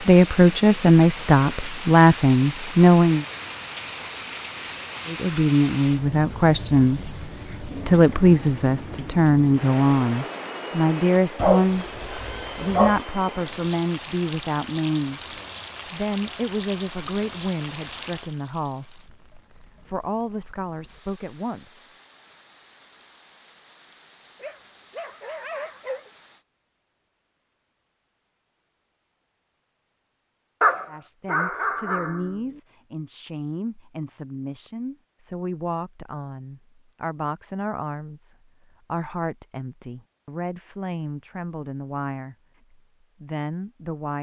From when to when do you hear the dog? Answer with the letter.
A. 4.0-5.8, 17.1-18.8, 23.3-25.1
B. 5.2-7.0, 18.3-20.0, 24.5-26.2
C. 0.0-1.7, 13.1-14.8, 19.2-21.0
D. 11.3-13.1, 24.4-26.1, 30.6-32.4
D.